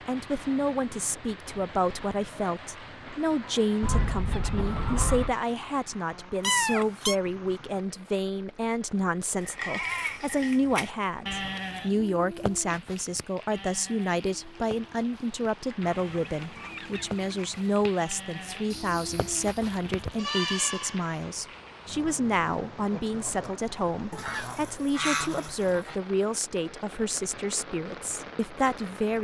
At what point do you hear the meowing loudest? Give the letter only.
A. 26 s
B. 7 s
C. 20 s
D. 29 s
B.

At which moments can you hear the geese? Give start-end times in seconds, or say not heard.
3.8-5.3, 15.8-17.8, 24.1-25.9.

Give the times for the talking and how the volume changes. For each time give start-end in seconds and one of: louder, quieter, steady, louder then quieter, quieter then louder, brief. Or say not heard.
0.1-29.1 steady.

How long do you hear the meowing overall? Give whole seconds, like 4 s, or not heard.
2 s.